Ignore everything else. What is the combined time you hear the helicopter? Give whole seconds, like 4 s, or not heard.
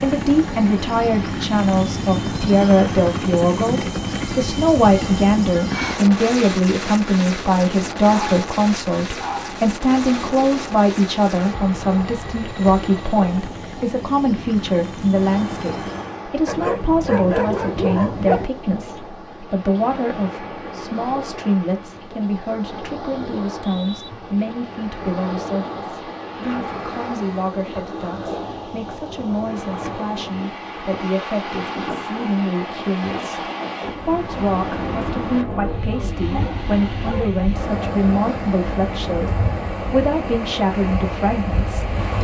16 s.